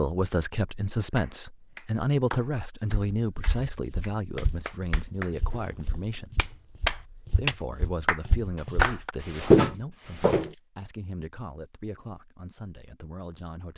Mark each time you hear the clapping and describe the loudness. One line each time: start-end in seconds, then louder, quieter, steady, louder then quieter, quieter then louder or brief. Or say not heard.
1.1-9.1 quieter then louder.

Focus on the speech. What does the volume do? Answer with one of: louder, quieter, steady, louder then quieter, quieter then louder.
quieter.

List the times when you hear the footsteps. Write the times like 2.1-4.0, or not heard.
3.1-10.6.